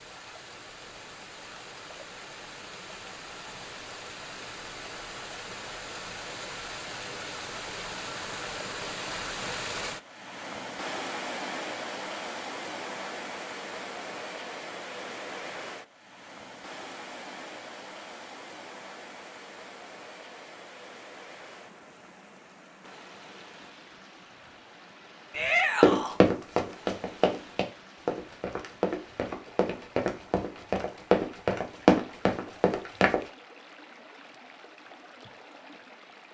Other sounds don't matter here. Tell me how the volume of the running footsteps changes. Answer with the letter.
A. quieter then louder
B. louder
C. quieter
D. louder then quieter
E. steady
A.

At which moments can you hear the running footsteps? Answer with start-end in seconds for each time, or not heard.
25.8-33.2.